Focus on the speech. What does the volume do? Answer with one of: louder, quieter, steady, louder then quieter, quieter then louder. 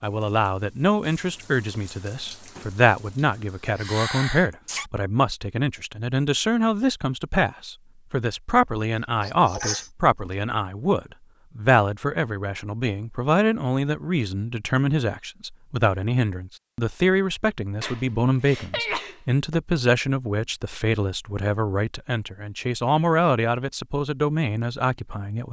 steady.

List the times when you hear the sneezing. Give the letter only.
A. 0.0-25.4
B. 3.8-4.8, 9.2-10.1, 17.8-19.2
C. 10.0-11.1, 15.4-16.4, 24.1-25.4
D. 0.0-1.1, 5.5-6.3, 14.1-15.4
B.